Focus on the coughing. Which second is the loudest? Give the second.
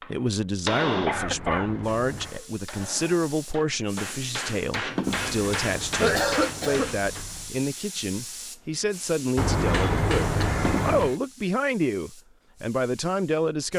6 s.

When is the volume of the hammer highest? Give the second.
1 s.